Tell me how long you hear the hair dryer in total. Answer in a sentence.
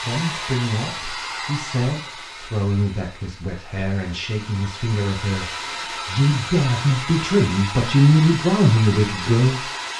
The hair dryer can be heard for 10 seconds in total.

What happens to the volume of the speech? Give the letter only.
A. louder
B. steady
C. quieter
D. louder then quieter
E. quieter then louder
A.